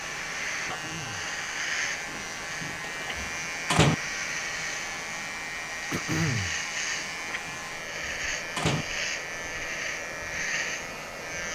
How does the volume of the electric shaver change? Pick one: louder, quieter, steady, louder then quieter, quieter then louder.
steady.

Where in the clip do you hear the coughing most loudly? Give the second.
6 s.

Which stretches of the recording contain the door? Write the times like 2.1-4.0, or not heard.
2.1-4.0, 7.0-8.8.